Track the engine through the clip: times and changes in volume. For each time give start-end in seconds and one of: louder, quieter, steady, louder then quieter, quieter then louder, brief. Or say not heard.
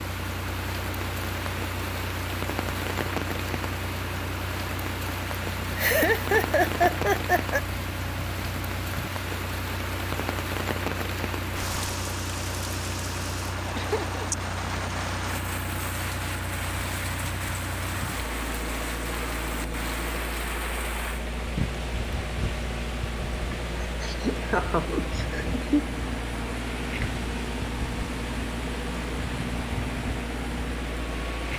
0.0-31.5 steady.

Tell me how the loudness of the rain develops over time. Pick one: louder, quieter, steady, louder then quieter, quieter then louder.
steady.